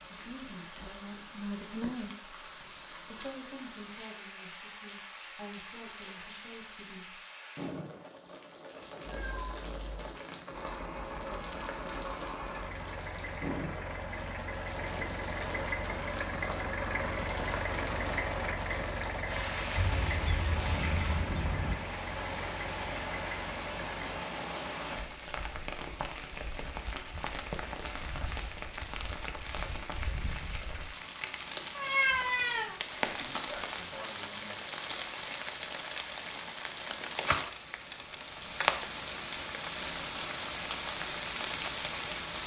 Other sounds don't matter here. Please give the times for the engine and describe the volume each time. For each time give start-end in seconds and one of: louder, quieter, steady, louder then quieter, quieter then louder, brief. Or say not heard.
10.5-24.2 louder then quieter.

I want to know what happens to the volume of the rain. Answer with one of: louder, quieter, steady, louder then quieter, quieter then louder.
louder.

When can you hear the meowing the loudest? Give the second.
32 s.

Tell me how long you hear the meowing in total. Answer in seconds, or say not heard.
4 s.